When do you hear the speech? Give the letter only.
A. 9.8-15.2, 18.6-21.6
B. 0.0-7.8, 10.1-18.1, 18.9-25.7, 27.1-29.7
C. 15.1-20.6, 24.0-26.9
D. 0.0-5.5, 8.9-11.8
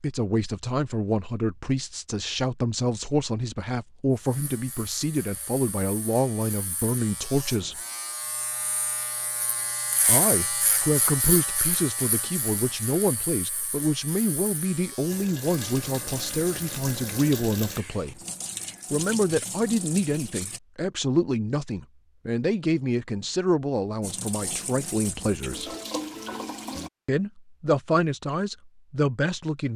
B.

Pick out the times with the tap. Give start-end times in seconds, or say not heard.
15.1-20.6, 24.0-26.9.